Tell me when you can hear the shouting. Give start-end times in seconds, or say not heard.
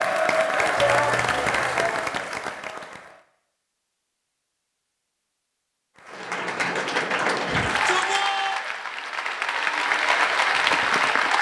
0.8-2.0, 7.5-8.6.